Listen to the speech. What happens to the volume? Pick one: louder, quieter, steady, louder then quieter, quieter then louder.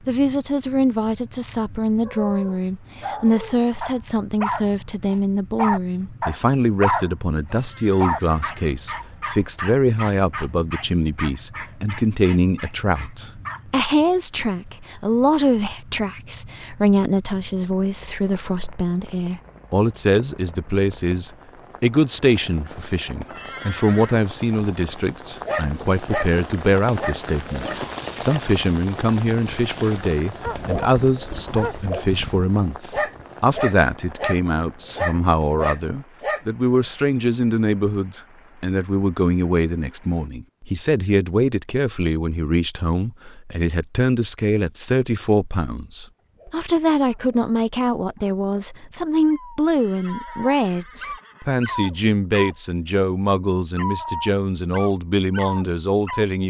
steady.